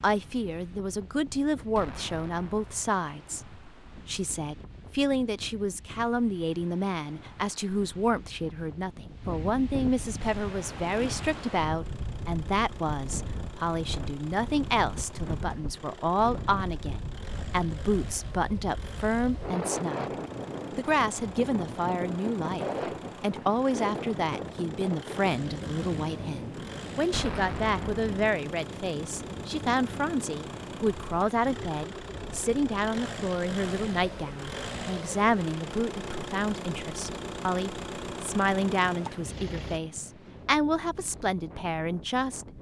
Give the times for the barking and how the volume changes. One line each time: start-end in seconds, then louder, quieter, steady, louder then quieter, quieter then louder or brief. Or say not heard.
not heard.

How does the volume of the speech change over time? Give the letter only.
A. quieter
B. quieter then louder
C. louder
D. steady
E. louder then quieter
D.